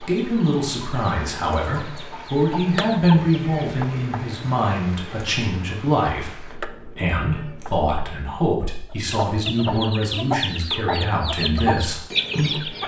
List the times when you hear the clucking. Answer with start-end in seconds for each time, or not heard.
0.0-3.6, 8.9-12.8.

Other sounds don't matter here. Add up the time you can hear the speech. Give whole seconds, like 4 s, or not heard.
13 s.